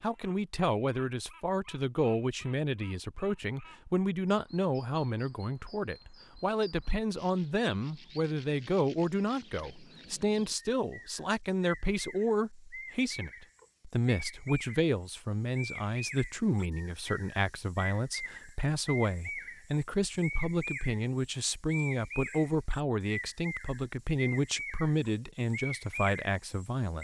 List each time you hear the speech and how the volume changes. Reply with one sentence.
You can hear the speech from 0.0 to 26.9 s, at a steady volume.